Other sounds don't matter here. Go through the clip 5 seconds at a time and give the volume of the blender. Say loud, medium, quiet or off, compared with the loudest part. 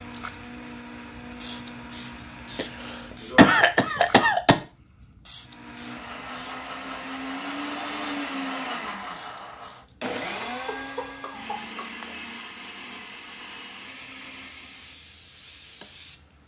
medium, loud, loud, off.